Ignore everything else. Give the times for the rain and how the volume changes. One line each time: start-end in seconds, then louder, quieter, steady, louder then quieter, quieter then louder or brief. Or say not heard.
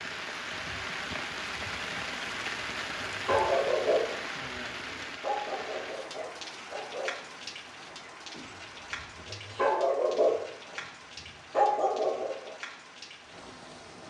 0.0-14.0 quieter.